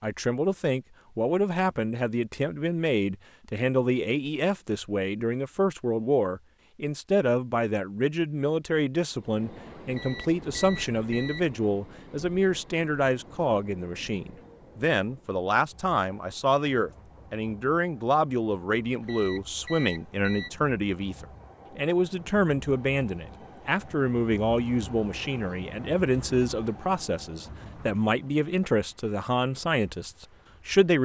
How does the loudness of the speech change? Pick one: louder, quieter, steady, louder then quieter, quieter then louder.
steady.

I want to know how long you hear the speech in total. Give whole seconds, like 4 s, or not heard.
31 s.